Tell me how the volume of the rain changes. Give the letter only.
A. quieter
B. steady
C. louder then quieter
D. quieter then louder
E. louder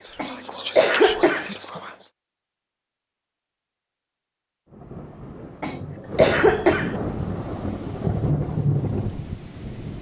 E.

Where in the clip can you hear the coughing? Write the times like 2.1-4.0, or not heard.
0.1-1.6, 5.6-7.0.